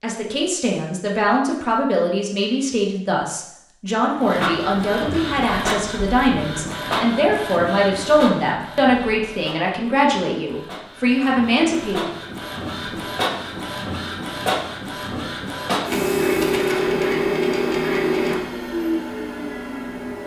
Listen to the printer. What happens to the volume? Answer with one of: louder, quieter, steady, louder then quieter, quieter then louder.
quieter then louder.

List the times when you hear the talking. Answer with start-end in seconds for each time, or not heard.
0.0-12.1.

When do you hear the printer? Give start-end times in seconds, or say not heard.
4.2-20.2.